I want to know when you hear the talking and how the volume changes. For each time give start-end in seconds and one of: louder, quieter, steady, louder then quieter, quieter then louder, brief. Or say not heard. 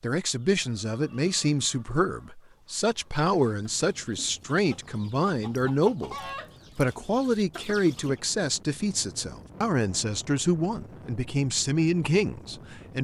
0.0-12.9 steady.